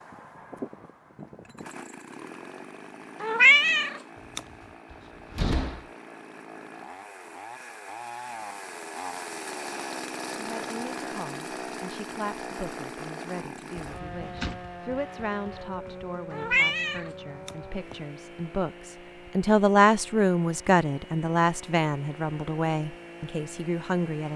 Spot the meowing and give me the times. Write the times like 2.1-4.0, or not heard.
3.2-4.4, 16.3-17.9.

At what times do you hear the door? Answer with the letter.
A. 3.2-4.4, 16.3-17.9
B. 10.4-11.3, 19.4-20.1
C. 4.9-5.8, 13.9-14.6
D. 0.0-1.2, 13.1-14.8
C.